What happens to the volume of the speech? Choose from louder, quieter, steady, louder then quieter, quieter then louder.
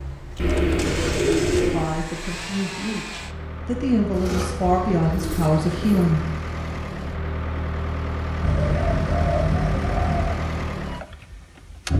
louder.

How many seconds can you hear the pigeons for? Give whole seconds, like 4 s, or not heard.
6 s.